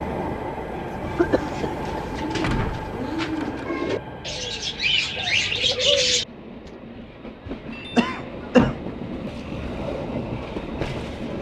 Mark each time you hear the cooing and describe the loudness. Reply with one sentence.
You can hear the cooing from 1.0 to 6.7 s, getting louder.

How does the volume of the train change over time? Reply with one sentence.
The volume of the train goes down, then up.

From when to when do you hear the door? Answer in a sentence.
You can hear the door from 2.4 to 3.6 s and from 7.7 to 8.9 s.